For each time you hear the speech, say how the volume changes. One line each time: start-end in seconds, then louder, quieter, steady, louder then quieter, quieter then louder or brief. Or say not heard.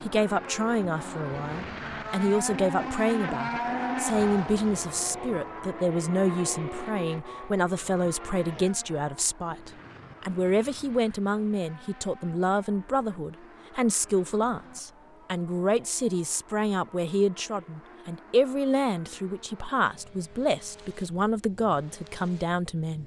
0.0-23.0 steady.